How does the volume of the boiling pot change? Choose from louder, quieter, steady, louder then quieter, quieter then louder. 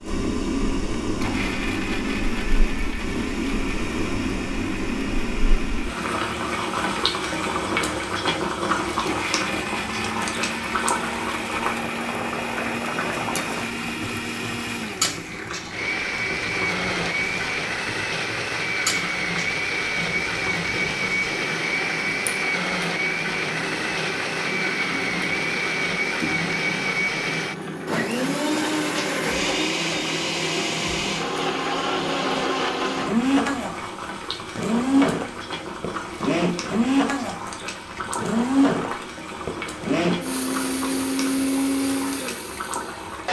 quieter.